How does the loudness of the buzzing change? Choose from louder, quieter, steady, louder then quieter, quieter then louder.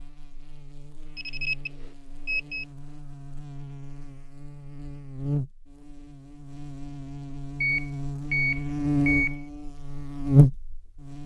louder.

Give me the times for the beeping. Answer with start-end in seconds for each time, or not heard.
1.1-2.6, 7.6-9.4.